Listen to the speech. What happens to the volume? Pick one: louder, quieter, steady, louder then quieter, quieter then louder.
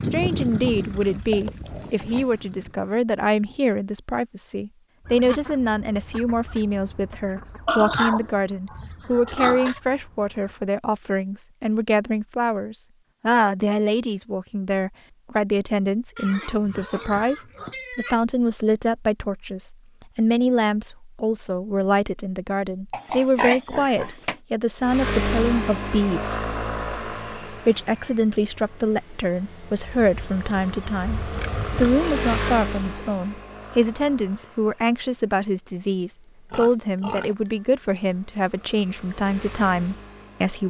steady.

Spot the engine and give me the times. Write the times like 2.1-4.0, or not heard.
0.0-3.0, 24.8-40.6.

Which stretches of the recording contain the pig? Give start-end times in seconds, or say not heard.
0.9-2.5, 7.7-9.8, 16.1-18.1, 22.9-24.4, 29.9-32.0, 36.5-37.6.